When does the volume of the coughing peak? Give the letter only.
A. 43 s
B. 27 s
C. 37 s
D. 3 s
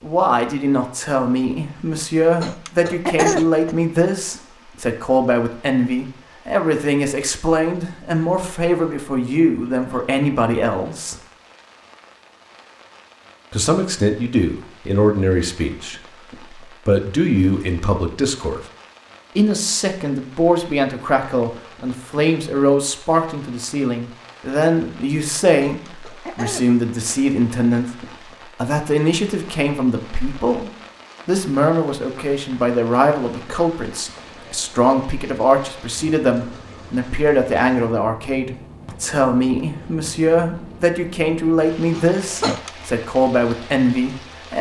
D.